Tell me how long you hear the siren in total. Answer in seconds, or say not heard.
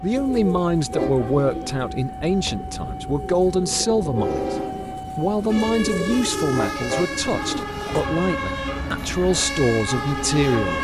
11 s.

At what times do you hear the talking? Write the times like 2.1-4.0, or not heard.
0.0-4.5, 5.2-10.7.